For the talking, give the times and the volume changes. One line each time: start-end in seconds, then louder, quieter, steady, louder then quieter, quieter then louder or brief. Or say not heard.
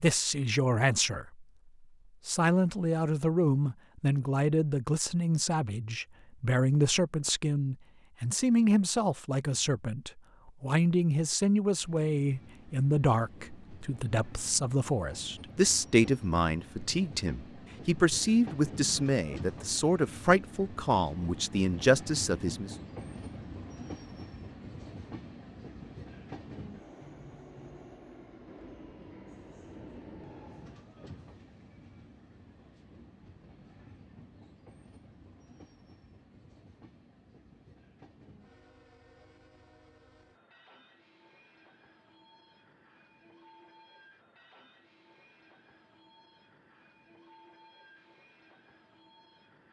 0.0-1.4 brief
2.2-22.8 steady.